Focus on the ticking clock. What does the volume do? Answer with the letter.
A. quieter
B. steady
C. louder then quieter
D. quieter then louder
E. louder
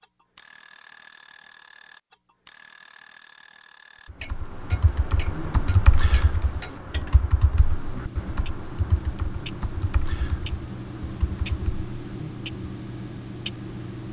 E.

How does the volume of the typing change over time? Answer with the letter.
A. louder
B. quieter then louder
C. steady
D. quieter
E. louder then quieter
D.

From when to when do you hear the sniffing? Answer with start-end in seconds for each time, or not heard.
not heard.